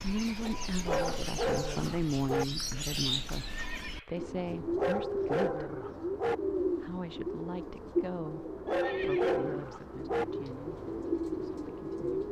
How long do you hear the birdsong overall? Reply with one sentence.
You can hear the birdsong for 12 seconds altogether.